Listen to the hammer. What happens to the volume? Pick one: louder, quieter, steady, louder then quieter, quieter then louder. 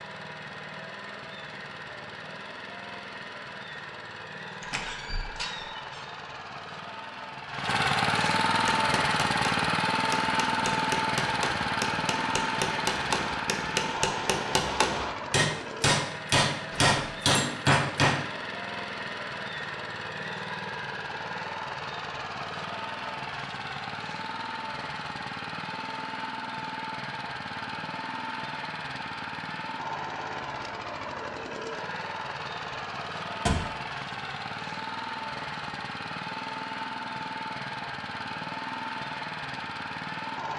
louder.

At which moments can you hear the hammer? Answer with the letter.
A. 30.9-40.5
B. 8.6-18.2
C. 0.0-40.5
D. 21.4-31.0
B.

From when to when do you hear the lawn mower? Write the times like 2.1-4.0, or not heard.
0.0-40.5.